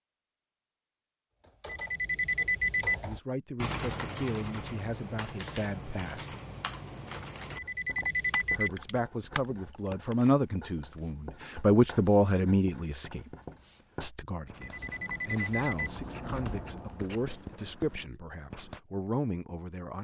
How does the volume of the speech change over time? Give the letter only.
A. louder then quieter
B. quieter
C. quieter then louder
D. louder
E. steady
A.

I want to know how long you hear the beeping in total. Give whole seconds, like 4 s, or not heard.
4 s.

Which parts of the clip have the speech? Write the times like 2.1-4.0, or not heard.
3.0-6.3, 8.6-13.3, 14.0-19.9.